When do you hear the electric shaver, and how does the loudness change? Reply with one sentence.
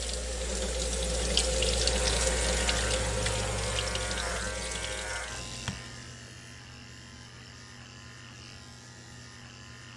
You can hear the electric shaver from 1.9 to 9.9 s, getting quieter.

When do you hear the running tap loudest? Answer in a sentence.
The volume of the running tap peaks at 2 seconds.